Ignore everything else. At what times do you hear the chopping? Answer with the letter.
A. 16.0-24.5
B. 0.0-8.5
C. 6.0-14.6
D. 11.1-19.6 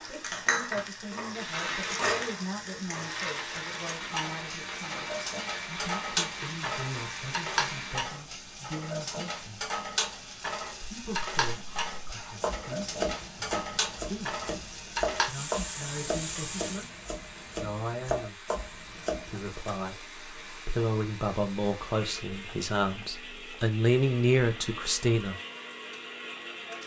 D.